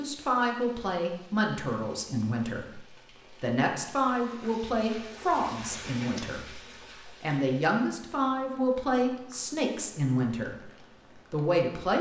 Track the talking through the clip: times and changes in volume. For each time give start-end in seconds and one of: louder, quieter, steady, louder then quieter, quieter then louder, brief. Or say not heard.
0.0-10.7 steady
11.3-11.9 brief.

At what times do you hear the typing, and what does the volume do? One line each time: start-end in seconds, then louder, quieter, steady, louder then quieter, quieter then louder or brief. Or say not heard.
not heard.